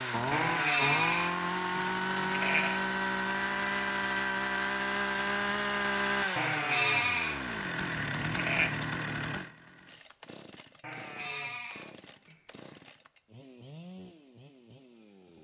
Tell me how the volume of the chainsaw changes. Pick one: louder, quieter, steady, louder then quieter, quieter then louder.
quieter.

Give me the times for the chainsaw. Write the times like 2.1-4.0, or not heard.
0.0-15.3.